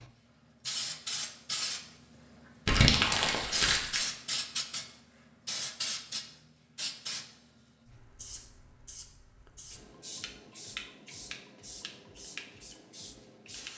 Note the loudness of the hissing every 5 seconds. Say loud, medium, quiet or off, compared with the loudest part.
loud, medium, medium.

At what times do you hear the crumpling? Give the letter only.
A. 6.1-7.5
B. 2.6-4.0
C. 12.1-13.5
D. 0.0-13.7
B.